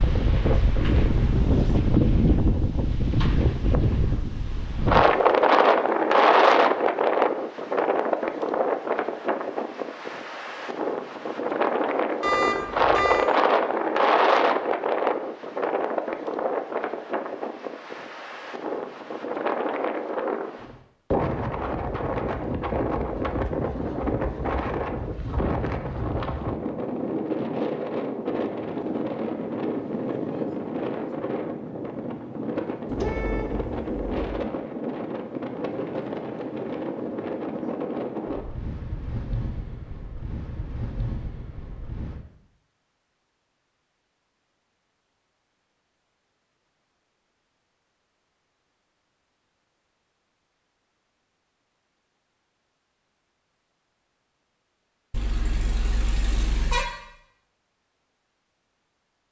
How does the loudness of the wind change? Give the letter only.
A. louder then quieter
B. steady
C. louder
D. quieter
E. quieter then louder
D.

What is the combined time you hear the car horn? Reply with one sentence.
You can hear the car horn for 4 seconds altogether.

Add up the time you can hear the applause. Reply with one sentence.
The applause can't be heard in this clip.